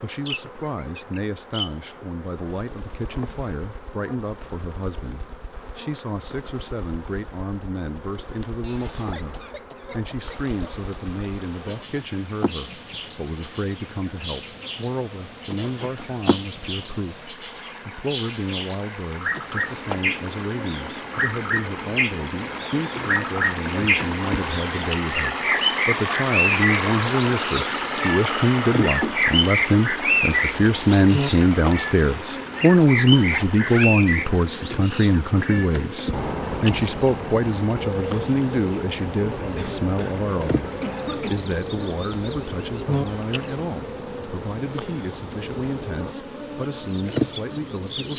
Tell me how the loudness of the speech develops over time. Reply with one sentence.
The volume of the speech goes up, then down.